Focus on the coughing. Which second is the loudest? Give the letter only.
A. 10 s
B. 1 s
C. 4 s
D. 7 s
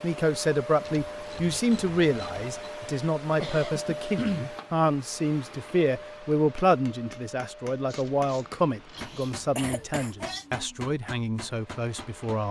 C.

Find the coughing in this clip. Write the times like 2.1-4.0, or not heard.
3.2-4.5, 8.9-10.4.